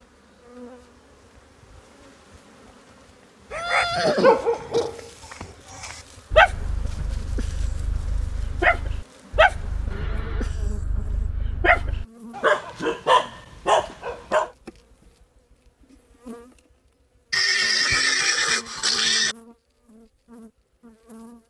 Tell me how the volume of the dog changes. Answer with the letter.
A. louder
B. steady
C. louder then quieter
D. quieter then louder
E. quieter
D.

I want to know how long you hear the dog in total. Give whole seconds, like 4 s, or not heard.
11 s.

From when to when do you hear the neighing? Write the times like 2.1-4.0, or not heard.
3.5-4.9, 9.9-10.6, 17.3-19.4.